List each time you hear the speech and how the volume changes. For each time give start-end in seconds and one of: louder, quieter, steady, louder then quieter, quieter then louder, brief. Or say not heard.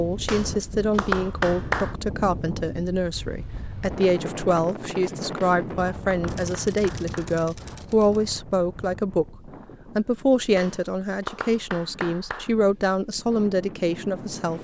0.0-14.5 steady.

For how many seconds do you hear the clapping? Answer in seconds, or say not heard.
6 s.